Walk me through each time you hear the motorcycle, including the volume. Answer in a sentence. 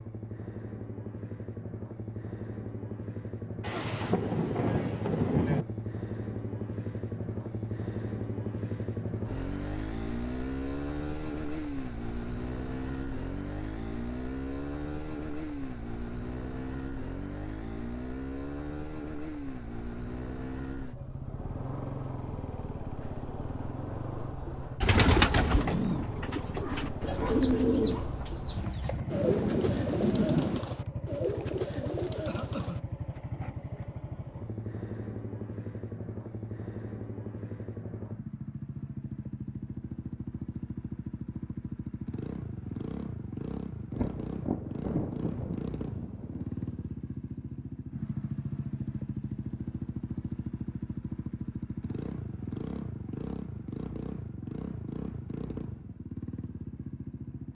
The motorcycle can be heard from 0.0 to 57.4 s, at a steady volume.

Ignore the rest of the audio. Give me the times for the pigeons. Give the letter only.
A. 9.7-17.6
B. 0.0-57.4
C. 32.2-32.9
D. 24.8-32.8
D.